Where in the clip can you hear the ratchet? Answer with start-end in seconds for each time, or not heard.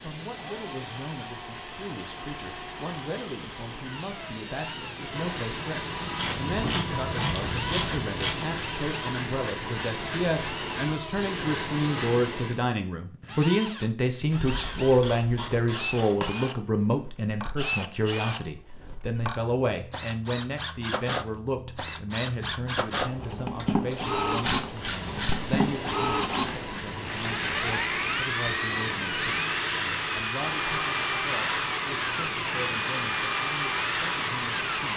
6.2-8.6, 14.3-16.3, 23.6-25.6.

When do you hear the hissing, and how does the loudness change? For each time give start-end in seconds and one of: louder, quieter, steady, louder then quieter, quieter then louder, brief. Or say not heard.
0.0-12.6 louder
24.6-34.9 steady.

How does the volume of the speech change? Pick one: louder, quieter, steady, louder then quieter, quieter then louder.
louder then quieter.